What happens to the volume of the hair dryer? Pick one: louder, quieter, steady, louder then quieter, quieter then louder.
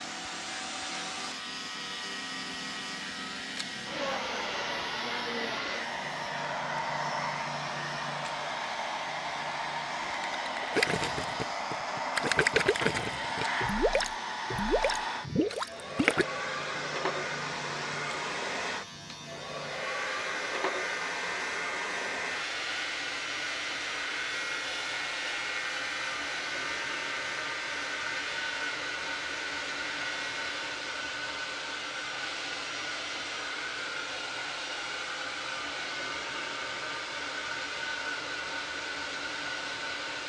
steady.